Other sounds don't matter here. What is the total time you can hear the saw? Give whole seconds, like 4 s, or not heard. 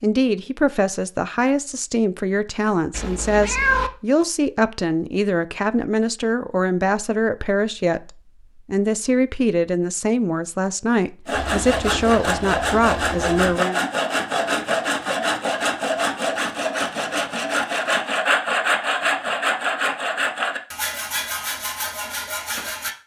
12 s.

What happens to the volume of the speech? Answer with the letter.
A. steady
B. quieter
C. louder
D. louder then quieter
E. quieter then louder
A.